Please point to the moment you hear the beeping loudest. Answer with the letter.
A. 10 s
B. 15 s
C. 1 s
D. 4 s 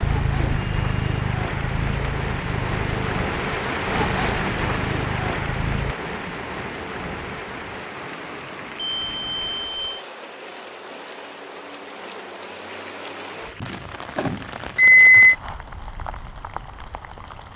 B.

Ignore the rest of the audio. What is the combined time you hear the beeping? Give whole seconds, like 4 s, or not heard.
4 s.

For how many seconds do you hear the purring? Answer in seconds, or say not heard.
6 s.